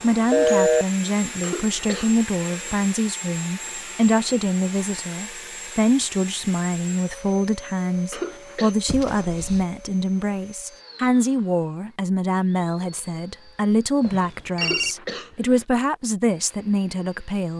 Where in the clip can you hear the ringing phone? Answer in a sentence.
You can hear the ringing phone from 0.3 to 0.8 s, from 8.8 to 9.7 s and from 14.0 to 14.9 s.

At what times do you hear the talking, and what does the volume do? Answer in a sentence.
You can hear the talking from 0.0 to 17.5 s, at a steady volume.